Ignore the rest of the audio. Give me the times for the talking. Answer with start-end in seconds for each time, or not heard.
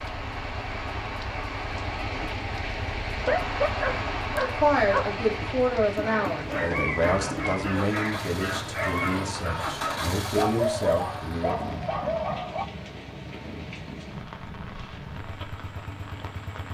4.4-11.7.